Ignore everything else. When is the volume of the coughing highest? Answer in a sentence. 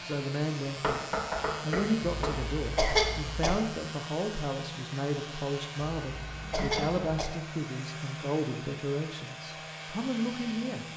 The loudest moment of the coughing is at 3 seconds.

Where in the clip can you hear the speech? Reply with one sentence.
You can hear the speech from 0.0 to 10.8 s.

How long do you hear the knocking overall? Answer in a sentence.
The knocking can be heard for 2 seconds in total.